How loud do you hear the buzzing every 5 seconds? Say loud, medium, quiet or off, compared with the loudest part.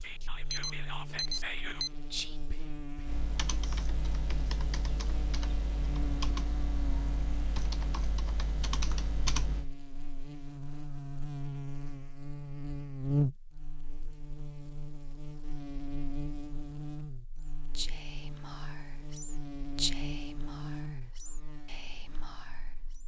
medium, medium, loud, medium, medium.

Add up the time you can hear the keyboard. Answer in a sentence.
The keyboard can be heard for 7 seconds in total.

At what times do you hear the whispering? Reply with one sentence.
The whispering can be heard from 0.0 to 3.9 s and from 17.8 to 23.0 s.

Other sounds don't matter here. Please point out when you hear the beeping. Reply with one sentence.
The beeping can be heard from 0.5 to 1.9 s.